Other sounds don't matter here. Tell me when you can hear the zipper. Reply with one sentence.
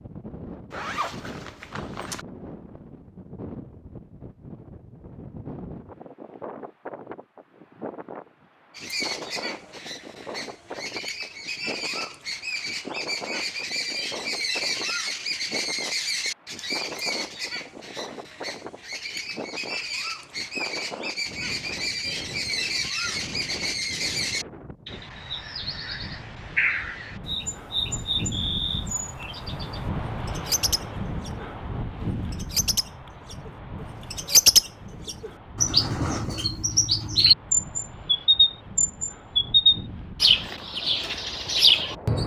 You can hear the zipper from 0.7 to 2.2 s.